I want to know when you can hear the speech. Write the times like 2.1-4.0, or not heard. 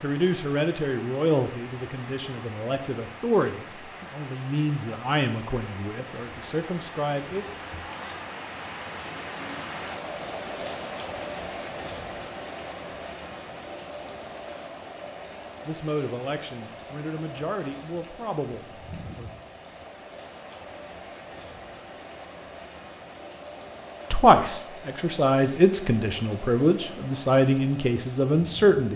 0.0-7.5, 15.7-19.3, 24.1-28.9.